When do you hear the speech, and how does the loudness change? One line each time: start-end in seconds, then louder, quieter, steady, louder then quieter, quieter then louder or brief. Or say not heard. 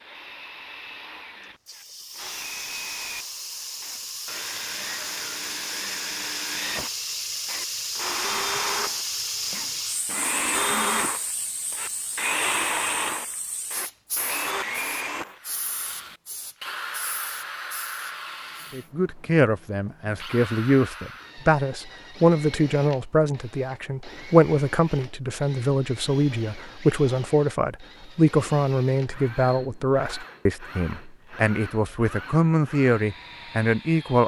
18.7-34.2 steady.